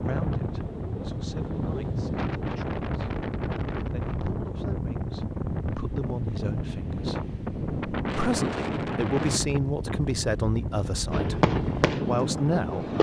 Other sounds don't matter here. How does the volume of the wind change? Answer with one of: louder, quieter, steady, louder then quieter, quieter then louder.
steady.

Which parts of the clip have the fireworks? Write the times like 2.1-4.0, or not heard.
11.1-12.9.